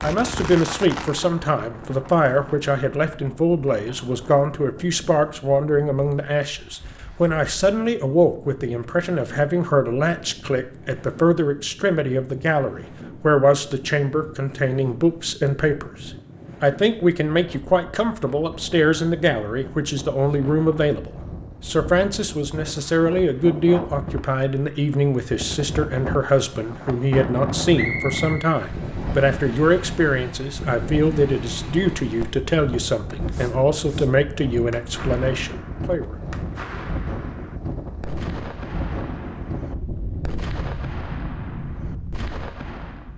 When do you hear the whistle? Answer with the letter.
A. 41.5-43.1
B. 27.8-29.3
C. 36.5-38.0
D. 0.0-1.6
B.